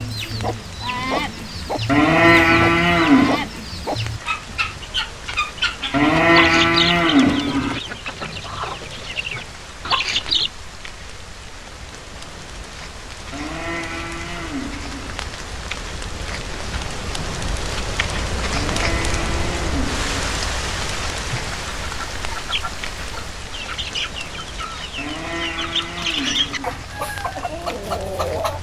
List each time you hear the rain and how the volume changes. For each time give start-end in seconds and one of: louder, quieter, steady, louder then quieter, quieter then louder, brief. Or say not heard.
0.0-28.5 louder then quieter.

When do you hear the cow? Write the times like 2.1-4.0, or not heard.
1.9-3.5, 5.9-7.8, 13.3-15.2, 18.5-20.4, 24.9-26.9.